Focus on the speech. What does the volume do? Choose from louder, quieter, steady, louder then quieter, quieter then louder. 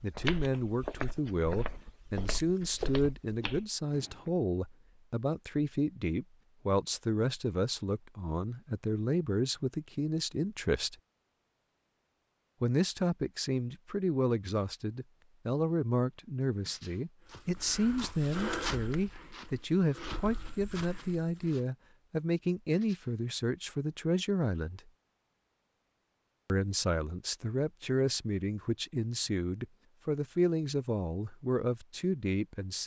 steady.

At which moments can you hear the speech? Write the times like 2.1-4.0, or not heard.
0.0-10.9, 12.6-24.8, 26.4-32.8.